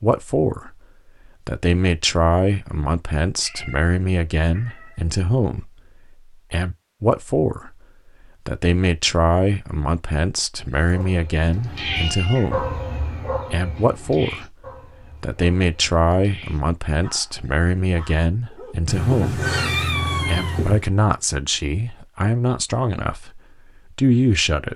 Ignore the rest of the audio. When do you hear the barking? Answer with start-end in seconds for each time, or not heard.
10.8-18.9.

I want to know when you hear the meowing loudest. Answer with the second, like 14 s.
20 s.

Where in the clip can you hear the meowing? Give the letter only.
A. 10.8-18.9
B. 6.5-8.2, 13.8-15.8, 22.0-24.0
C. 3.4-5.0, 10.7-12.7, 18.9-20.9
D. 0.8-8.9
C.